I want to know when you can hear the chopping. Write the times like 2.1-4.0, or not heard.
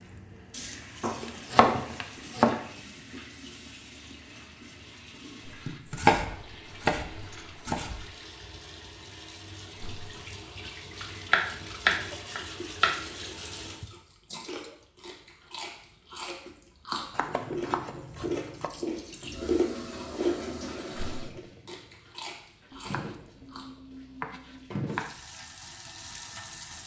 1.0-2.6, 5.5-8.1, 11.3-13.0, 17.1-18.7, 22.7-25.1.